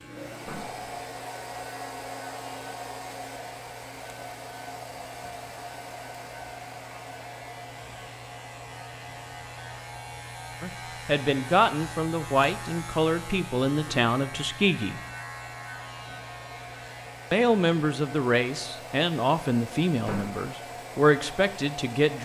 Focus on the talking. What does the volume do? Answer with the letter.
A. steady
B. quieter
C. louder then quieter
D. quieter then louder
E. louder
A.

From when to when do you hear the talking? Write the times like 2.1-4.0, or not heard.
10.6-15.0, 17.3-22.2.